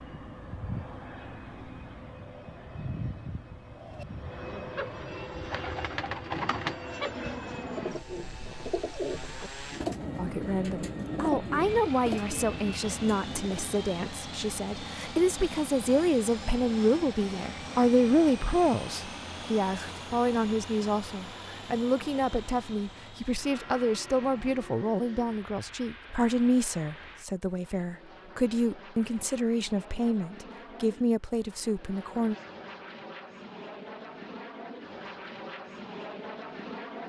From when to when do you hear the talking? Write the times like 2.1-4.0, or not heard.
10.2-32.4.